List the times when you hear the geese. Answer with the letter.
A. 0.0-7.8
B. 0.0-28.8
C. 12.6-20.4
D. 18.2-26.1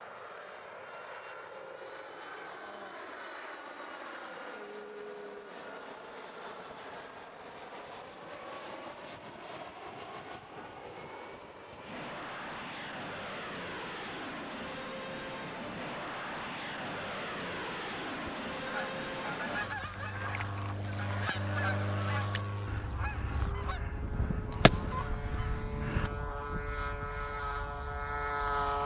D.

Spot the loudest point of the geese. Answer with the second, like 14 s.
25 s.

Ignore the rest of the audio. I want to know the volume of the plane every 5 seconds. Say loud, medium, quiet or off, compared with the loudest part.
medium, medium, medium, loud, loud, loud.